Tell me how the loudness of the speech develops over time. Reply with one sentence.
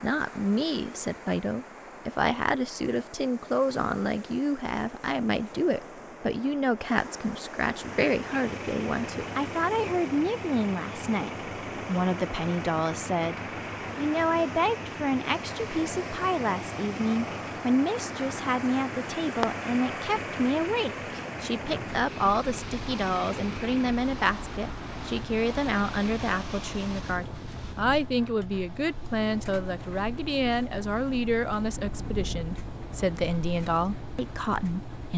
The loudness of the speech stays about the same.